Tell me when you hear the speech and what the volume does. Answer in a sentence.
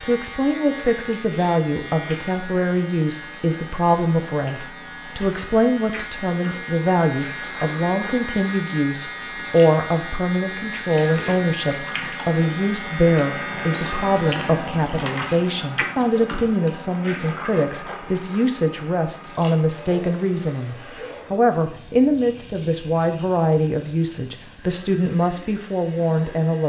You can hear the speech from 0.0 to 26.6 s, at a steady volume.